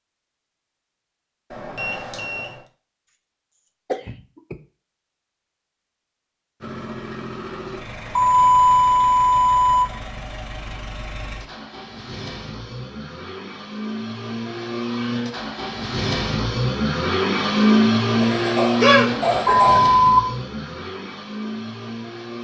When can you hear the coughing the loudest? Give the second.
19 s.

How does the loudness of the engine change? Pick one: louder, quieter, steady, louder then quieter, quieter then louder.
louder then quieter.